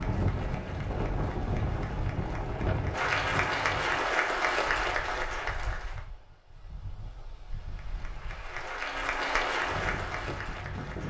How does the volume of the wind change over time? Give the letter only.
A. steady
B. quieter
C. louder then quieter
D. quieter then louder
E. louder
D.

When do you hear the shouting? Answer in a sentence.
The shouting can't be heard in this clip.